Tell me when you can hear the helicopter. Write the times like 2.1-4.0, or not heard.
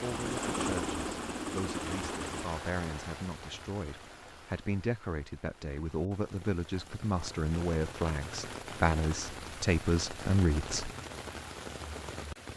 0.0-2.5.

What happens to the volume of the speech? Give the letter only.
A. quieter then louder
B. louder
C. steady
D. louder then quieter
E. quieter
B.